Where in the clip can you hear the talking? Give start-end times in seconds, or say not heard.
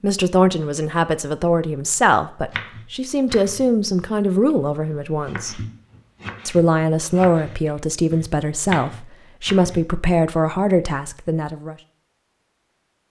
0.0-5.6, 6.5-11.8.